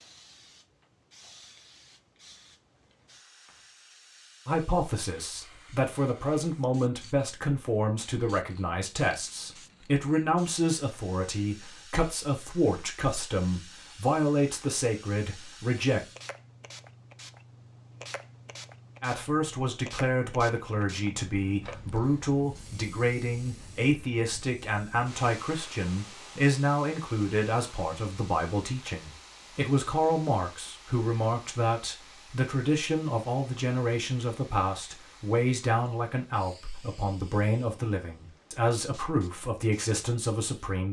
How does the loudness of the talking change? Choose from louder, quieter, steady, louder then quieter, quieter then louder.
steady.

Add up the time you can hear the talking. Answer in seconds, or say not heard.
33 s.